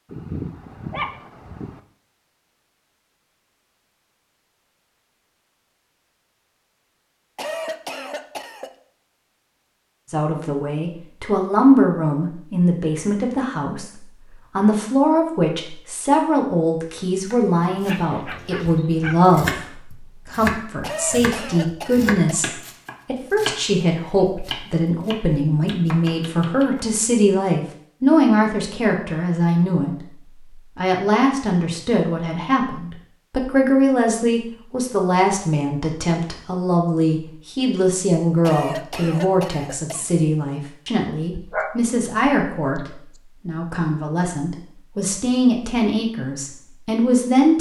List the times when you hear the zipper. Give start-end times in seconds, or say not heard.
not heard.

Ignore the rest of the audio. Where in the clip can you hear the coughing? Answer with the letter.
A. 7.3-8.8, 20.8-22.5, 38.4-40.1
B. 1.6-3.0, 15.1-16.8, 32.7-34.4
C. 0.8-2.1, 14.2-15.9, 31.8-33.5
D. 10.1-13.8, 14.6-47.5
A.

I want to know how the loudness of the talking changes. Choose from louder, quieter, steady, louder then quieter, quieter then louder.
steady.